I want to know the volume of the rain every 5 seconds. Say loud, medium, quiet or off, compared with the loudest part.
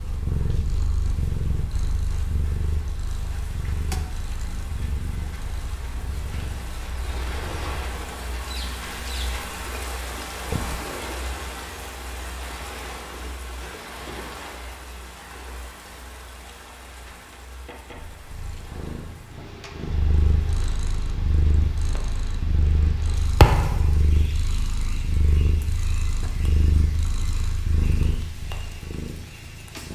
medium, loud, loud, medium, medium, medium.